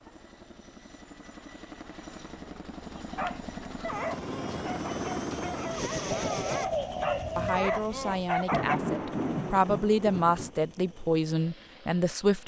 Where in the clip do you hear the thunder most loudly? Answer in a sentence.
The loudest moment of the thunder is at 9 seconds.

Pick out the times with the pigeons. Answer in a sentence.
You can hear the pigeons from 6.1 to 7.7 s.